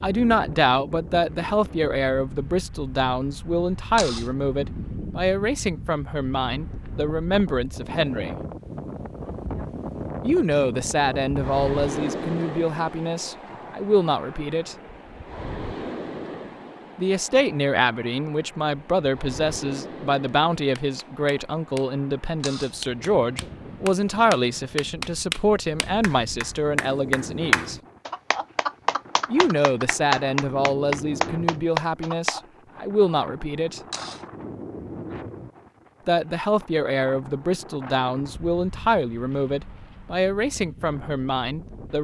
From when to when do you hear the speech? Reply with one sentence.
You can hear the speech from 0.0 to 8.3 s, from 10.2 to 14.8 s, from 16.9 to 27.8 s, from 29.3 to 33.8 s and from 36.0 to 41.9 s.